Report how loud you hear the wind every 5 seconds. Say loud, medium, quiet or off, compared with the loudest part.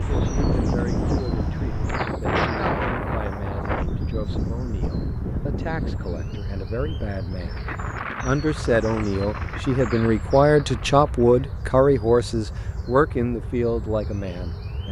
loud, medium, quiet.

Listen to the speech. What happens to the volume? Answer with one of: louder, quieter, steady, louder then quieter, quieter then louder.
louder.